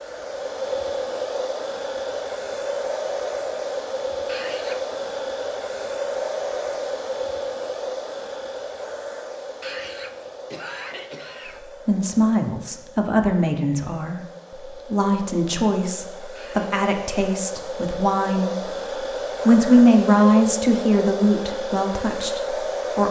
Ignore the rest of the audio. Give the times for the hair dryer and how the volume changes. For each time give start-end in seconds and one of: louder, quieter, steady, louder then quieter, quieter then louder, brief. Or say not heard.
0.0-23.0 quieter then louder.